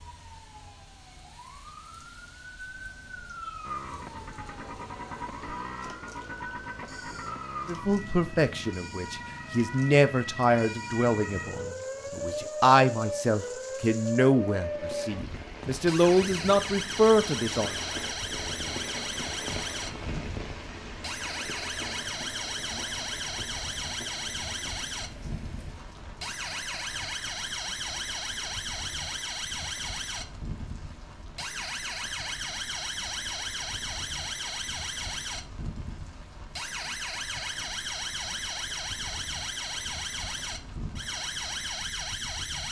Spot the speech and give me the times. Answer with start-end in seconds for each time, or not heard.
7.7-17.8.